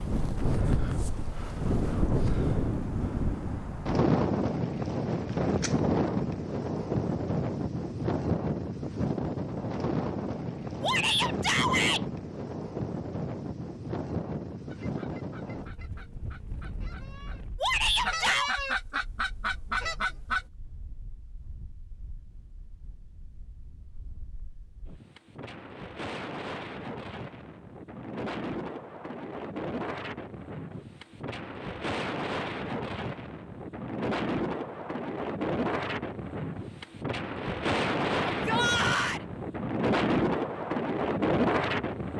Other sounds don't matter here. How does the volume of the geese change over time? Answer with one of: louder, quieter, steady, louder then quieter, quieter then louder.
louder.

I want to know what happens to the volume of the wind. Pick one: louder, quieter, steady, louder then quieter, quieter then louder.
quieter then louder.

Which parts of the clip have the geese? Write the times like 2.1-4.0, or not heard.
14.7-20.4.